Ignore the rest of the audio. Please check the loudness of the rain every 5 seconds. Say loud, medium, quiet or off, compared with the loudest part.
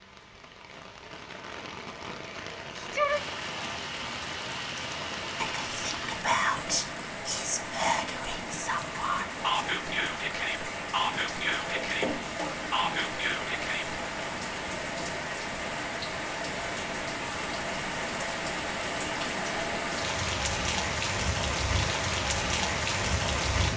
medium, medium, medium, loud, loud.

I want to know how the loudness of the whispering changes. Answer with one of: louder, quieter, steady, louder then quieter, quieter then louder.
steady.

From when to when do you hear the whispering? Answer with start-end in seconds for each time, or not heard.
5.3-14.0.